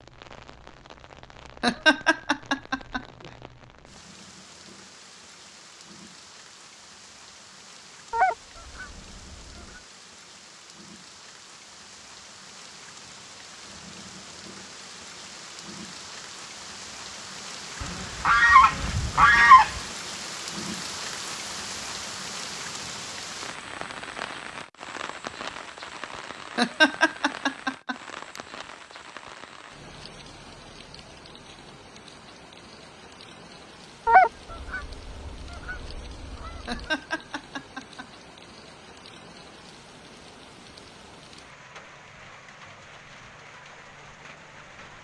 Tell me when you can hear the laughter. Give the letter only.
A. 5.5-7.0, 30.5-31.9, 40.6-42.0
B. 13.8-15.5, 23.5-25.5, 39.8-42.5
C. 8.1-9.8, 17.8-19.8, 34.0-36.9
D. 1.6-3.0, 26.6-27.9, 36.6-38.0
D.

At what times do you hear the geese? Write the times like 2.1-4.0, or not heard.
8.1-9.8, 17.8-19.8, 34.0-36.9.